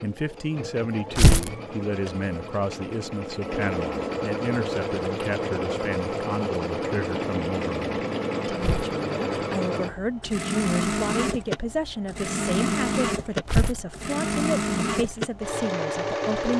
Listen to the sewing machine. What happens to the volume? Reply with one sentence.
The loudness of the sewing machine goes up.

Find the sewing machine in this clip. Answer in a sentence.
You can hear the sewing machine from 0.0 to 16.5 s.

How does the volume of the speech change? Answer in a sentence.
The volume of the speech stays about the same.